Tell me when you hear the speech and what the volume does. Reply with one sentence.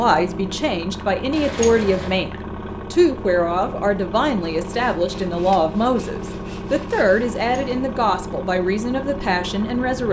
The speech can be heard from 0.0 to 10.0 s, at a steady volume.